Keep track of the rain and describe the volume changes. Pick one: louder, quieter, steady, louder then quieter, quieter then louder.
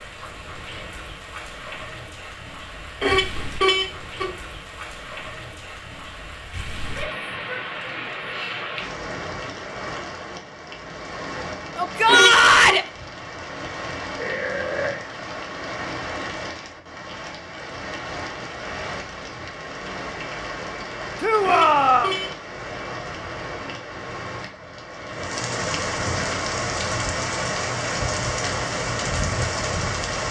louder.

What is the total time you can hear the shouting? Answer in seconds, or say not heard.
3 s.